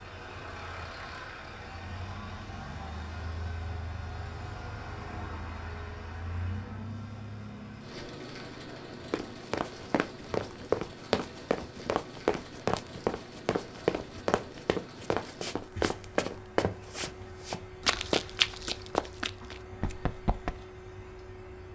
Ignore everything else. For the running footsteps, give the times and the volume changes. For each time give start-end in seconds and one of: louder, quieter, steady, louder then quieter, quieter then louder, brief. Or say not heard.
9.1-20.6 steady.